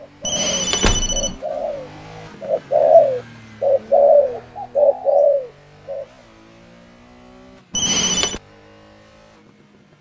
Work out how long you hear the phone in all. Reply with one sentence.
You can hear the phone for 2 seconds altogether.